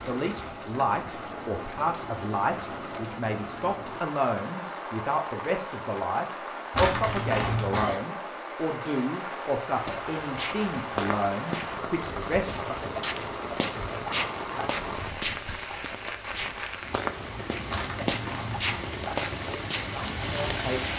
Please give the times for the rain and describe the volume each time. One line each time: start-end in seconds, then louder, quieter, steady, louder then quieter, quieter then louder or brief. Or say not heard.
0.0-20.9 steady.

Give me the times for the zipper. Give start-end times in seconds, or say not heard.
6.7-8.0, 17.6-18.8.